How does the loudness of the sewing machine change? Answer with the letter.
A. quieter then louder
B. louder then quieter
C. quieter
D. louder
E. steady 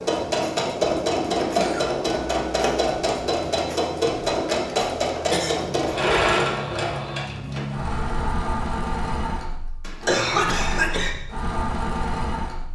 C.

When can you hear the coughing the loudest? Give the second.
10 s.